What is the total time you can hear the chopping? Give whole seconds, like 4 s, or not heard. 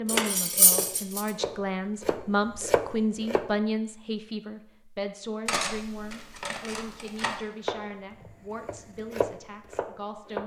7 s.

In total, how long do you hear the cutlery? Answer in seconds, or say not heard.
3 s.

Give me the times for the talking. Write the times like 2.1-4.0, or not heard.
0.0-10.4.